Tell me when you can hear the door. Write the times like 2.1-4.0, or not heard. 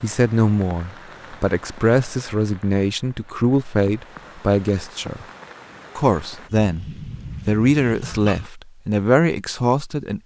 not heard.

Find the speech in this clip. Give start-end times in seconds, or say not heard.
0.0-5.2, 6.0-10.2.